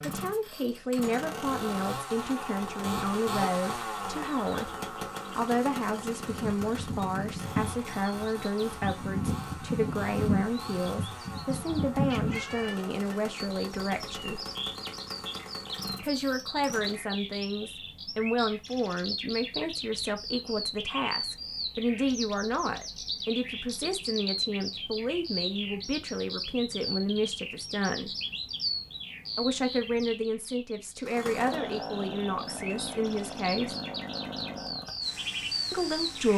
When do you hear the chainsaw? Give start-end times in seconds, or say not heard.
0.0-17.1, 31.1-36.3.